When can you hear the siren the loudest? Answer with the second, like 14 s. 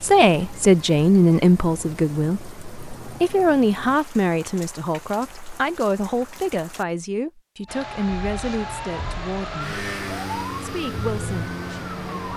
11 s.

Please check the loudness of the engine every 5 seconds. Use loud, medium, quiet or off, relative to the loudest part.
off, loud, loud.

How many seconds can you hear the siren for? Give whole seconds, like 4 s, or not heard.
5 s.